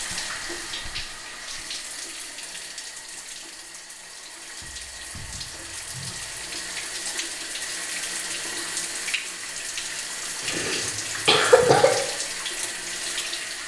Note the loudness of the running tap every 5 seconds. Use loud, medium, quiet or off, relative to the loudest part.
medium, loud, loud.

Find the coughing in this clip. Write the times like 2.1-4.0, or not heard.
10.4-11.9.